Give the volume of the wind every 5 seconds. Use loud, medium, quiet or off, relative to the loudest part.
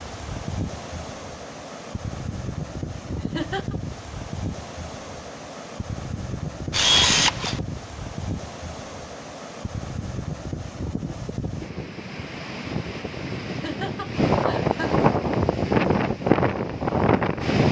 quiet, quiet, medium, loud.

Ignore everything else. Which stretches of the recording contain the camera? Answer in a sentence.
The camera can be heard from 6.7 to 7.6 s.